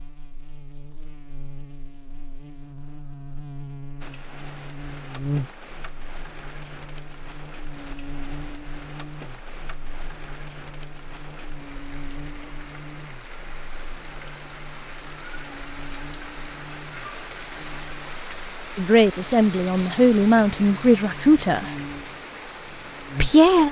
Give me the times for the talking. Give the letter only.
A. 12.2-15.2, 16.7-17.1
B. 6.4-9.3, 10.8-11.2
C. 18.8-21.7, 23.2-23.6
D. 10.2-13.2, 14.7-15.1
C.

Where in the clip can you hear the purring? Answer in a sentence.
You can't hear the purring here.